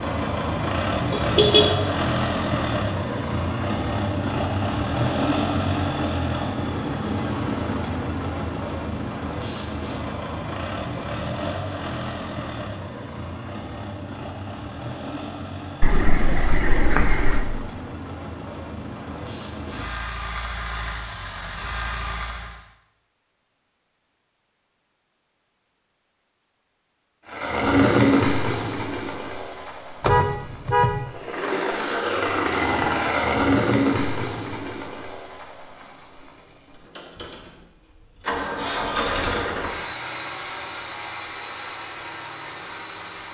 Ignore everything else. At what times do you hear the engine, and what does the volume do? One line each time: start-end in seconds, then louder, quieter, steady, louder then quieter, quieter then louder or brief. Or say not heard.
0.0-22.6 quieter
27.2-43.2 quieter.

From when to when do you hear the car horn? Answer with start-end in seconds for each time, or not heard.
1.1-1.9, 15.8-17.4, 30.0-31.0.